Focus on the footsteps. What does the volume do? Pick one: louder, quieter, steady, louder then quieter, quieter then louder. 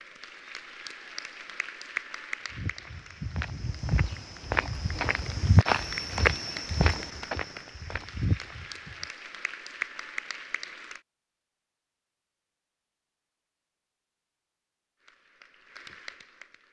louder then quieter.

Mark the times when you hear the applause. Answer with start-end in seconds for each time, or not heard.
0.0-11.0, 15.0-16.6.